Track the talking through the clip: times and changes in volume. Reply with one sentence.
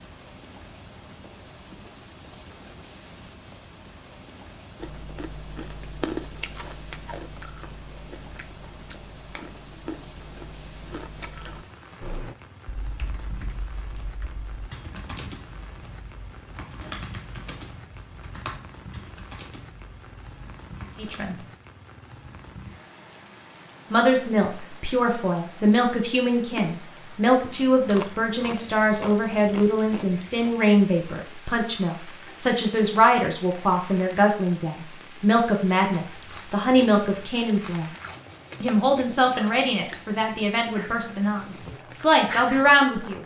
You can hear the talking briefly from 20.9 to 21.4 s; from 23.9 to 37.9 s, at a steady volume; and from 38.6 to 43.2 s, getting quieter then louder.